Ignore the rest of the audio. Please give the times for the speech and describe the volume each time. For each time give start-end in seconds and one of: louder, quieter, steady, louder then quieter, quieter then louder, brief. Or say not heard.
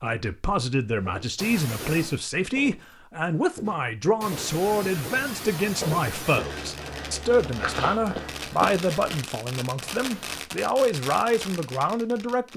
0.0-12.5 steady.